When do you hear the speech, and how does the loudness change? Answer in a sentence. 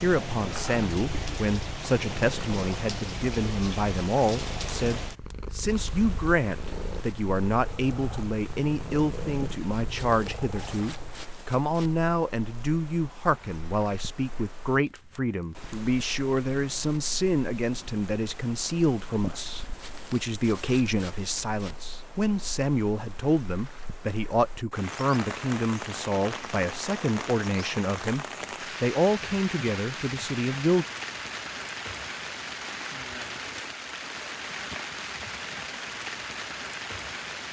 The speech can be heard from 0.0 to 30.9 s, at a steady volume.